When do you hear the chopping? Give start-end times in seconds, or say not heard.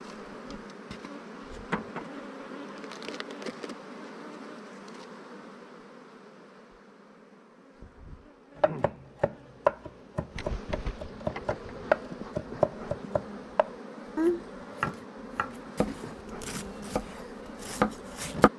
8.6-18.5.